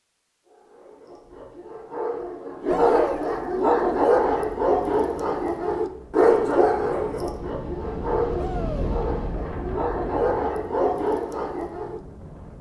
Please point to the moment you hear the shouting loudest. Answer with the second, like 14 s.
3 s.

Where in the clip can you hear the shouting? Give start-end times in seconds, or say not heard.
2.6-3.2, 8.3-8.9.